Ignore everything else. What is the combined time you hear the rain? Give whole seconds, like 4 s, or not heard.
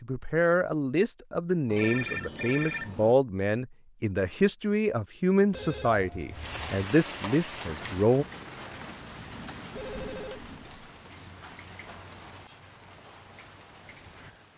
8 s.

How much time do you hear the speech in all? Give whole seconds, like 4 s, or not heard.
8 s.